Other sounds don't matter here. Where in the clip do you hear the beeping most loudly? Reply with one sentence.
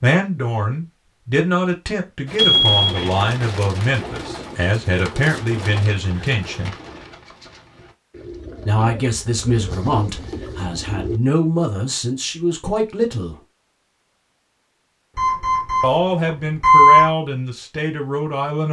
The volume of the beeping peaks at 17 seconds.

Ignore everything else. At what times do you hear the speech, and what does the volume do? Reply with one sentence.
The speech can be heard from 0.0 to 6.8 s, at a steady volume; from 8.7 to 13.3 s, at a steady volume; and briefly from 15.8 to 18.6 s.